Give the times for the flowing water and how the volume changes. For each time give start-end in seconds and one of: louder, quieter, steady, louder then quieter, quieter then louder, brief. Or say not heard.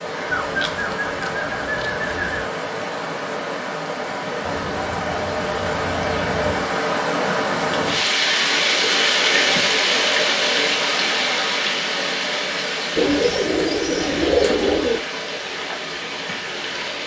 0.0-17.0 louder then quieter.